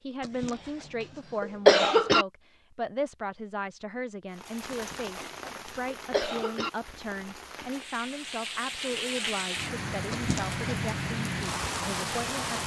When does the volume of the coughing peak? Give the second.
2 s.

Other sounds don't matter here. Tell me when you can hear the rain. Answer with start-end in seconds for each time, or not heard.
4.3-12.6.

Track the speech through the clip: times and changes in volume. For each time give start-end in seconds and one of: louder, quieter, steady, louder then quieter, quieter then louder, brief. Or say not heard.
0.0-12.6 steady.